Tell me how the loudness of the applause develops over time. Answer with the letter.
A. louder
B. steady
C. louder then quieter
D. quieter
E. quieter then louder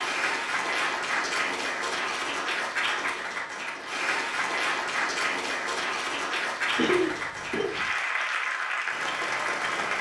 B.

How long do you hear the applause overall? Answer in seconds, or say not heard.
10 s.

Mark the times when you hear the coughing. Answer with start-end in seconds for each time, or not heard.
6.8-7.9.